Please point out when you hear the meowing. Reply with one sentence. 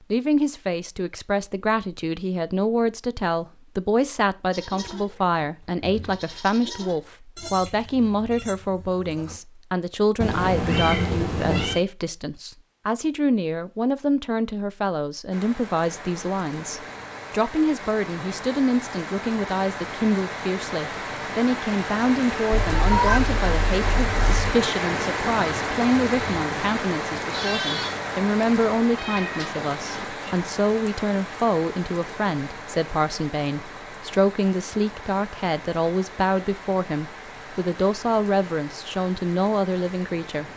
The meowing can be heard from 10.2 to 11.8 s, from 22.5 to 24.5 s and from 28.9 to 30.2 s.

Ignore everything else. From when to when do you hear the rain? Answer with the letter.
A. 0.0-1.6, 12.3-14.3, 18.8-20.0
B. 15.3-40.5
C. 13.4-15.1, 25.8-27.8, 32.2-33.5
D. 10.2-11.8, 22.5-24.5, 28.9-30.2
B.